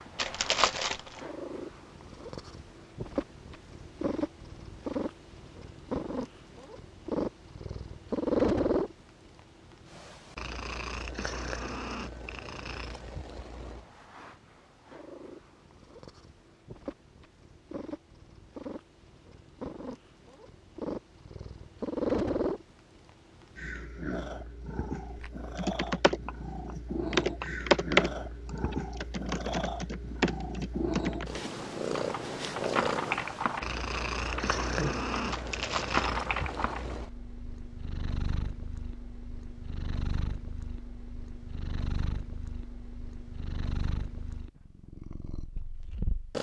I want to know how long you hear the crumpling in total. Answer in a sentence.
The crumpling can be heard for 2 seconds in total.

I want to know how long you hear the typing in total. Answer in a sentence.
The typing can be heard for 11 seconds in total.